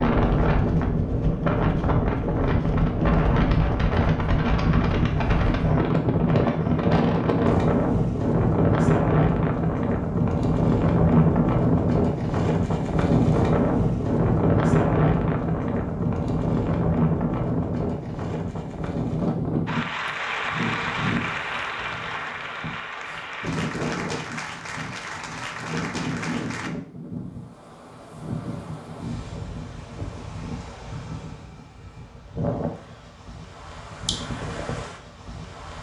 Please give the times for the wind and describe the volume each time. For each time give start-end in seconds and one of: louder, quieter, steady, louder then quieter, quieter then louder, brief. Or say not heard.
0.0-35.7 quieter.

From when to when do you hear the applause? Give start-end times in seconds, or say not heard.
19.6-26.7.